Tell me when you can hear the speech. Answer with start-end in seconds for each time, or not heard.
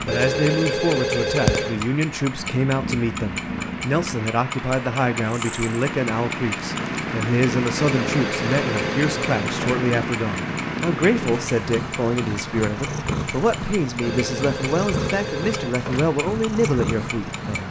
0.0-17.6.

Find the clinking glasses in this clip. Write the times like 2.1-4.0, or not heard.
not heard.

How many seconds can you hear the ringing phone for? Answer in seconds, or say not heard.
6 s.